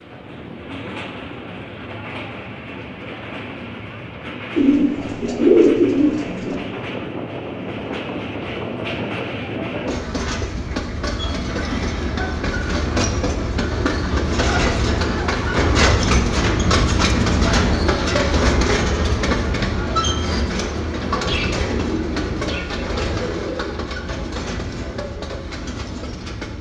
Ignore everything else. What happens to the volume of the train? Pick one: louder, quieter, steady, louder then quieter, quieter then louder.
louder then quieter.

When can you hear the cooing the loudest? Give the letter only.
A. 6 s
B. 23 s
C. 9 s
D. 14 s
A.